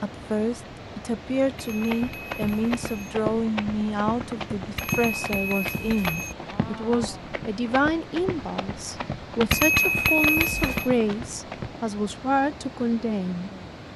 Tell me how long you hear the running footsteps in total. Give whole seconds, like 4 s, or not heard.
10 s.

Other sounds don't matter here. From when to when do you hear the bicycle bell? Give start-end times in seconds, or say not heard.
1.6-3.1, 4.8-6.3, 9.5-10.9.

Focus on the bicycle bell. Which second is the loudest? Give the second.
10 s.